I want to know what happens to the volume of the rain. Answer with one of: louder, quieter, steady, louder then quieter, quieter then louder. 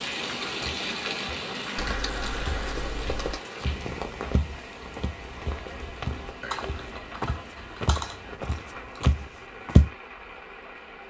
quieter.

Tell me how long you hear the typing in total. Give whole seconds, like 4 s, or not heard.
4 s.